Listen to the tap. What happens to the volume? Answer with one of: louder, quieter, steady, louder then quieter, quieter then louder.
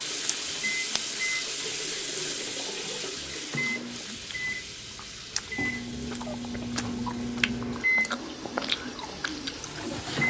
quieter.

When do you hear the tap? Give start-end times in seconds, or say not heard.
0.0-10.2.